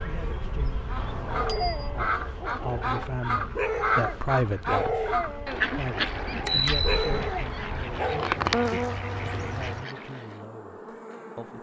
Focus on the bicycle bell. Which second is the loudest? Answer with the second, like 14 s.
7 s.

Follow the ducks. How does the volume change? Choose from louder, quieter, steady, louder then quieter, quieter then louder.
quieter.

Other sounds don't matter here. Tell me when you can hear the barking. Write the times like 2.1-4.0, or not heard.
1.2-8.3.